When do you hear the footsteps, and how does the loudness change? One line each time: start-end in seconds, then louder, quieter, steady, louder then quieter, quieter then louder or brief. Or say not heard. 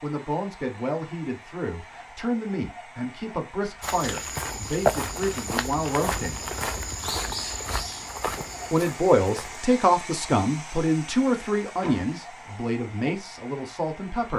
3.8-9.7 quieter.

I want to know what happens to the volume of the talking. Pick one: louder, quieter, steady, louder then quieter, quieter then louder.
louder then quieter.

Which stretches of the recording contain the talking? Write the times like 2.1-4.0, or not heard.
0.0-6.4, 8.7-14.3.